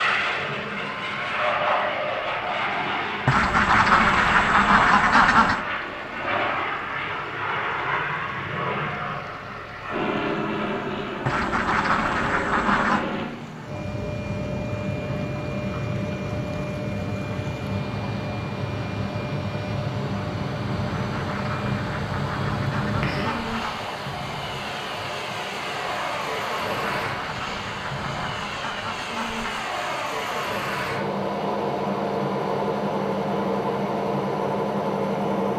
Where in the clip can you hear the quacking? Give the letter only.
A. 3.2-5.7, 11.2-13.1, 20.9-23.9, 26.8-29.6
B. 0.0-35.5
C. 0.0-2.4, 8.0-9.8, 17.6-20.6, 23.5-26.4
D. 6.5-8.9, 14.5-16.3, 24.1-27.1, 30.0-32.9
A.